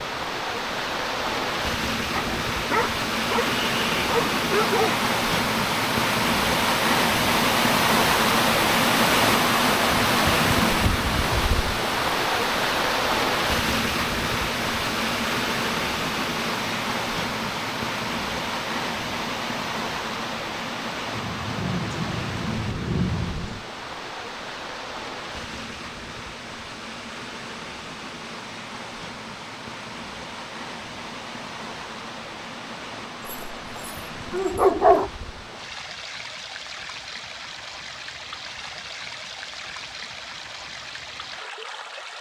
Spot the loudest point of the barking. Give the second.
35 s.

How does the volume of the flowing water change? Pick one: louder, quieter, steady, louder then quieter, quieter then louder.
quieter.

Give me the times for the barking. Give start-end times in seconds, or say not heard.
2.1-5.0, 33.2-35.1.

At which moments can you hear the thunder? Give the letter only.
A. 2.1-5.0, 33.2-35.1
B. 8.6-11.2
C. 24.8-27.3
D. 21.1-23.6
D.